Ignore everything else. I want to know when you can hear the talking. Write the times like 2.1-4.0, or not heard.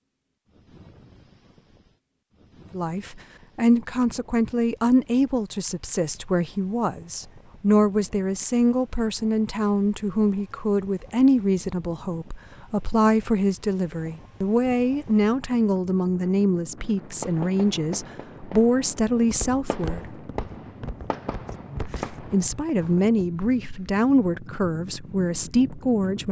2.7-20.0, 21.7-26.2.